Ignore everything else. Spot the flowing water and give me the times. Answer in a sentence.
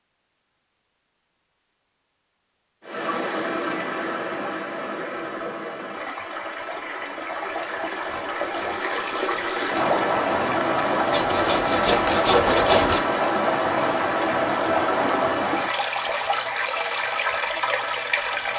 You can hear the flowing water from 2.8 to 18.5 s.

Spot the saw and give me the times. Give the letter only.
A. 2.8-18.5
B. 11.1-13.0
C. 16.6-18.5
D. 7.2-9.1
B.